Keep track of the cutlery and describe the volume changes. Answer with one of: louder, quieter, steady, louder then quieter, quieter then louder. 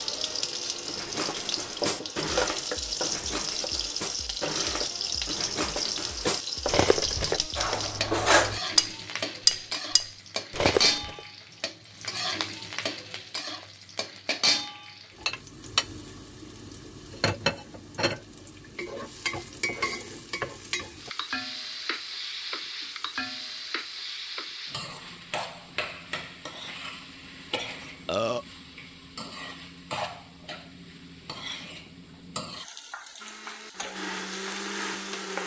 louder.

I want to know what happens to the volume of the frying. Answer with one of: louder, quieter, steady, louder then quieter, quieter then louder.
quieter.